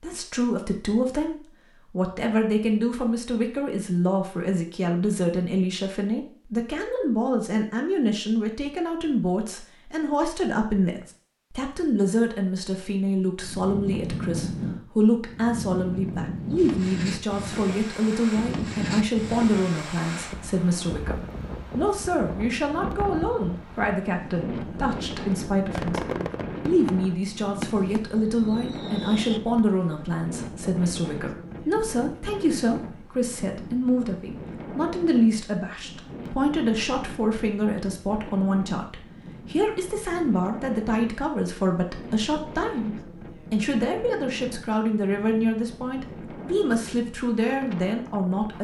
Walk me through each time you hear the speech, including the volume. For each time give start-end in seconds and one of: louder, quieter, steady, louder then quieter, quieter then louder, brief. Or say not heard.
0.0-48.5 steady.